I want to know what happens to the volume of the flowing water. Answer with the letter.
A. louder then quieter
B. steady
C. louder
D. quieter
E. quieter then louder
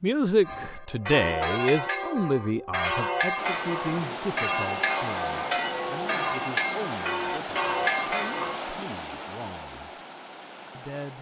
D.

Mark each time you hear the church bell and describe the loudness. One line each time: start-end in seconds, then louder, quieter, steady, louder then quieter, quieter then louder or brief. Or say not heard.
0.4-8.6 steady.